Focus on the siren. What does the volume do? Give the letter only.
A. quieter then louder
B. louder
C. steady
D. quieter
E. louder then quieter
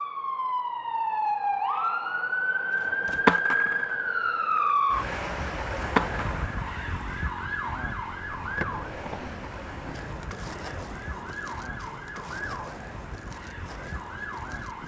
D.